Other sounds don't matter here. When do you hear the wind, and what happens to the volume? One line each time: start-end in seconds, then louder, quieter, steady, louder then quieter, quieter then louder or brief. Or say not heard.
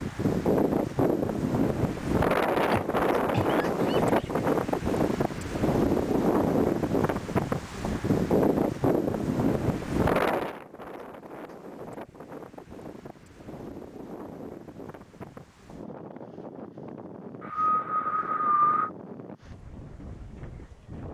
0.0-21.0 quieter.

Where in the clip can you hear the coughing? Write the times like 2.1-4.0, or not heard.
2.7-4.5, 17.4-18.9.